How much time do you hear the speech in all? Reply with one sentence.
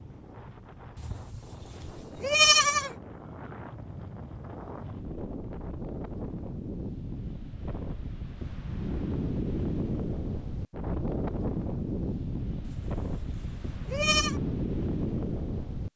The speech can't be heard in this clip.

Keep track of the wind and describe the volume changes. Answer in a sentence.
The loudness of the wind goes up.